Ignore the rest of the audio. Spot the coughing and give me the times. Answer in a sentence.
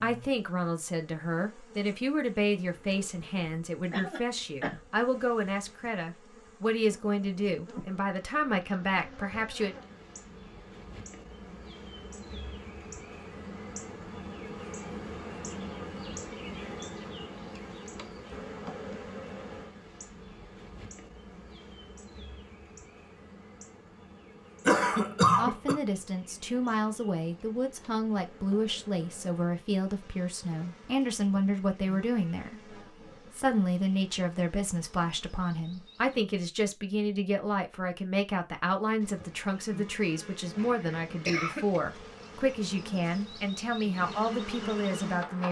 The coughing can be heard from 3.9 to 4.8 s, from 24.6 to 25.8 s and from 40.5 to 41.8 s.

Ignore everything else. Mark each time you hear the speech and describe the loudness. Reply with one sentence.
You can hear the speech from 0.0 to 9.8 s, at a steady volume; and from 25.4 to 45.4 s, at a steady volume.